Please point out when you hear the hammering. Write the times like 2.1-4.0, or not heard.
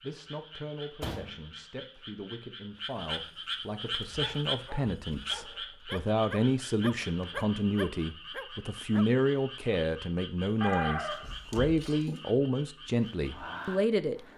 not heard.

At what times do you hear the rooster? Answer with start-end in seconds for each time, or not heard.
10.6-12.1.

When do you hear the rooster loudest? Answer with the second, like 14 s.
11 s.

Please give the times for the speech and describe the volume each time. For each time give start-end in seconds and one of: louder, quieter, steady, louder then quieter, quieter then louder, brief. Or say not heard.
0.0-14.2 louder.